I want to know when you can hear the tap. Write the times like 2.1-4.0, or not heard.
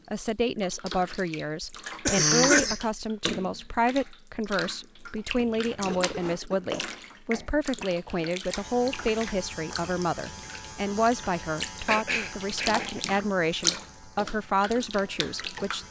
0.0-15.8.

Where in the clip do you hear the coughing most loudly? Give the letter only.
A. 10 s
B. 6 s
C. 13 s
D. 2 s
D.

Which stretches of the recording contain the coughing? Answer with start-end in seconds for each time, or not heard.
1.6-2.9, 5.9-6.7, 11.8-12.9.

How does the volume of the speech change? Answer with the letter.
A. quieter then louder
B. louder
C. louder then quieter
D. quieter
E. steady
E.